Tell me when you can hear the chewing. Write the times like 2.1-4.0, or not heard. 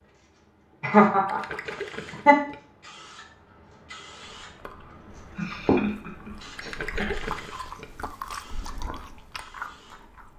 4.3-10.3.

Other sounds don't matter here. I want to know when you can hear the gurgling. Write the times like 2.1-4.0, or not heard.
1.2-2.5, 6.5-7.8.